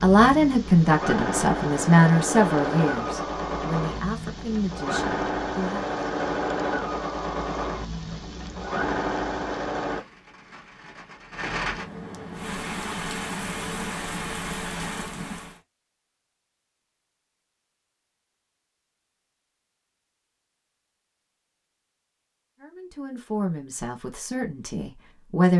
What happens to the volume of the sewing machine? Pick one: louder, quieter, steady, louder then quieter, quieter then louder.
steady.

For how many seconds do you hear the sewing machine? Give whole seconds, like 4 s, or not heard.
10 s.